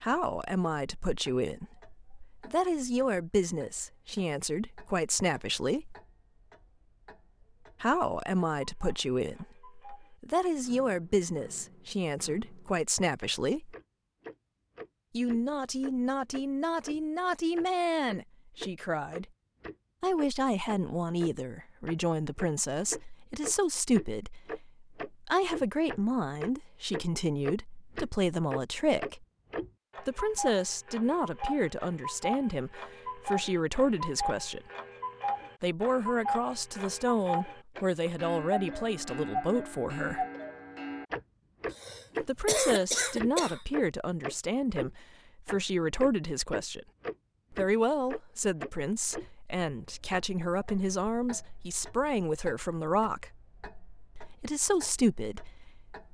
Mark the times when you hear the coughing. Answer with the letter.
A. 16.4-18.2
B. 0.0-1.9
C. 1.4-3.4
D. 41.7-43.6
D.